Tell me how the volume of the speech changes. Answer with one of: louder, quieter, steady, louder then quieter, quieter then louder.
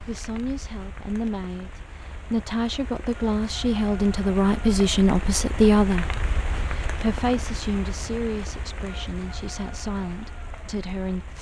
louder then quieter.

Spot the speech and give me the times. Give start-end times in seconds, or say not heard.
0.1-11.3.